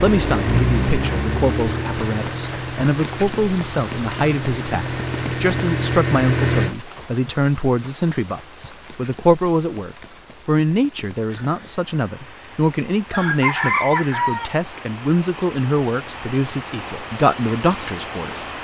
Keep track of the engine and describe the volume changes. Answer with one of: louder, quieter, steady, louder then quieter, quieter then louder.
quieter then louder.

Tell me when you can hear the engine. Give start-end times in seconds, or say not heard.
0.0-6.8.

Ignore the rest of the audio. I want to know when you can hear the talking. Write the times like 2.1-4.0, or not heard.
0.0-18.4.